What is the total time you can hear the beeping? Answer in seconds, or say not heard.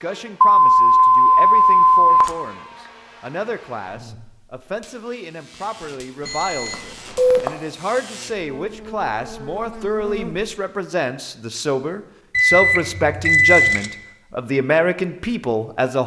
5 s.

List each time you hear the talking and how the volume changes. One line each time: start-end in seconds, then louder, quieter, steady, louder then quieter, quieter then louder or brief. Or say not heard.
0.0-16.0 louder.